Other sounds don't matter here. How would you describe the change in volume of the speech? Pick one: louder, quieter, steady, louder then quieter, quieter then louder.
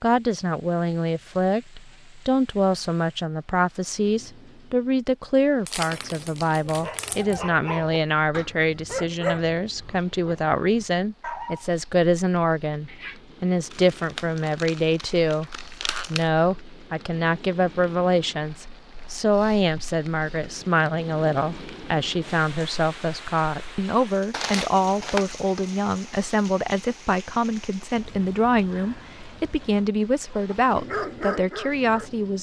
steady.